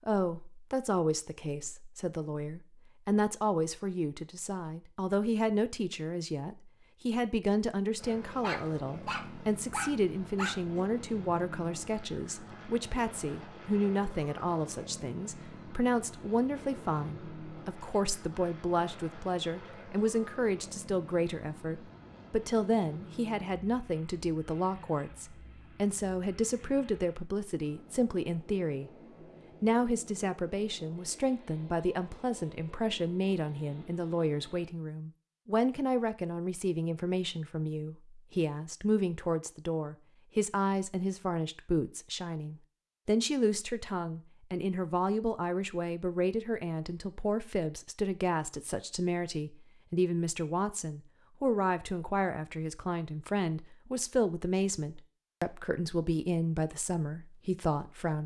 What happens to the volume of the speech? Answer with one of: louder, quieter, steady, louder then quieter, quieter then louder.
steady.